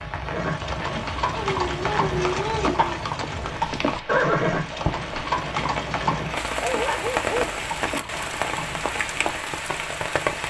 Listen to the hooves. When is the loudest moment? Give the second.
4 s.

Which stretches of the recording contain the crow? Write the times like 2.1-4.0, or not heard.
not heard.